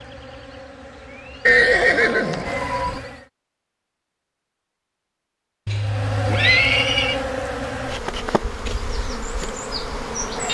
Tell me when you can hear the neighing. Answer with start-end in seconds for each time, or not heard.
1.4-3.0, 5.7-7.2.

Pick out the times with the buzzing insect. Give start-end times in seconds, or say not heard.
0.0-3.2, 5.7-10.4.